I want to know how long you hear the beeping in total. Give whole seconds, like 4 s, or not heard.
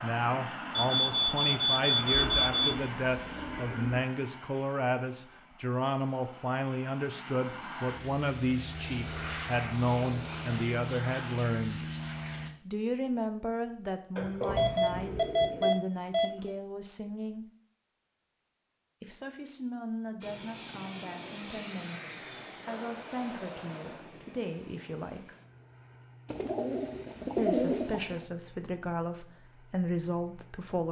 6 s.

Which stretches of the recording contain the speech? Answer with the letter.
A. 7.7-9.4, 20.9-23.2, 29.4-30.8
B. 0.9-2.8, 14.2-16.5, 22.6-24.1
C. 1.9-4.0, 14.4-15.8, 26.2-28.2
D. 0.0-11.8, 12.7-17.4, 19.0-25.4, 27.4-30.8
D.